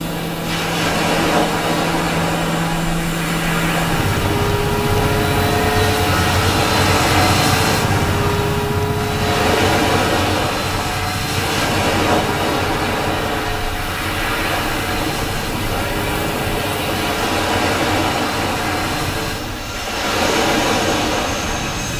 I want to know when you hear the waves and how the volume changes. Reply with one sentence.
You can hear the waves from 0.0 to 21.9 s, at a steady volume.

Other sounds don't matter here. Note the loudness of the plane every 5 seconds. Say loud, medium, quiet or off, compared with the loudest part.
loud, loud, medium, medium, medium.